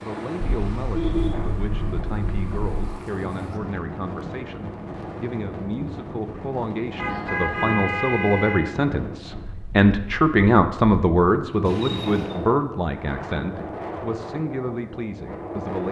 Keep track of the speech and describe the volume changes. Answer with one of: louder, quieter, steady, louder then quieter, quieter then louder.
louder then quieter.